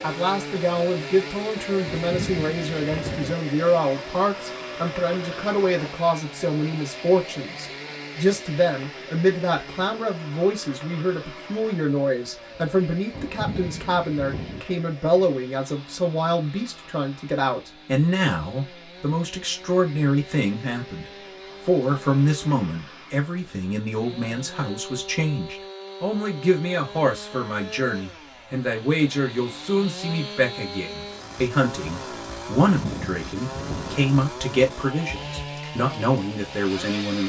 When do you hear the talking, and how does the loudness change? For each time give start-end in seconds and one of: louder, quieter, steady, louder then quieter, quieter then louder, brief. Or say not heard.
0.0-37.2 steady.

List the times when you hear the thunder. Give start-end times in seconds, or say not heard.
1.9-3.4, 13.1-14.7, 32.6-34.0.